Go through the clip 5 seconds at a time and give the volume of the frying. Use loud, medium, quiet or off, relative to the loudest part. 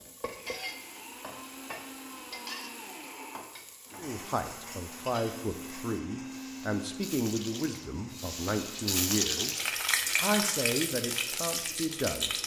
quiet, loud, loud.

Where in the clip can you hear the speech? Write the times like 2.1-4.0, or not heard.
4.0-12.3.